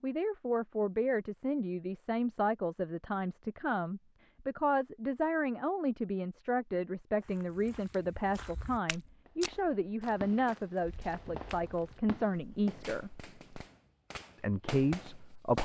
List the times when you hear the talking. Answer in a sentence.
The talking can be heard from 0.0 to 13.1 s and from 14.3 to 15.5 s.